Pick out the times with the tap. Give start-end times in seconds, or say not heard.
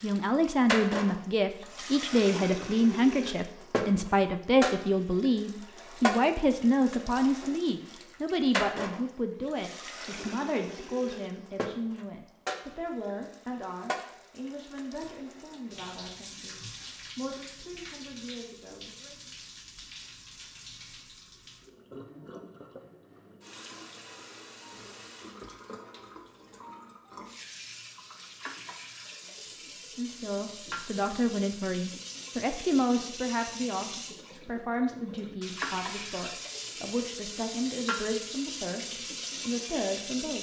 0.0-40.3.